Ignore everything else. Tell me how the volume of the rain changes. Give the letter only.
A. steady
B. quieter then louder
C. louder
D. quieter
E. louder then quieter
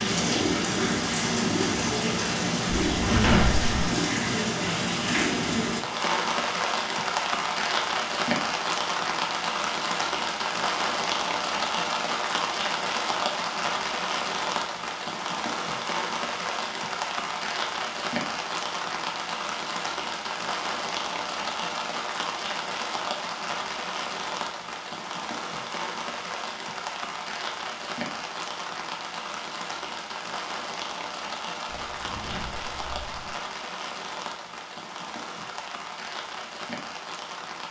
D.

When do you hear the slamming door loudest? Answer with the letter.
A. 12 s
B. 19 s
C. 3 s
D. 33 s
C.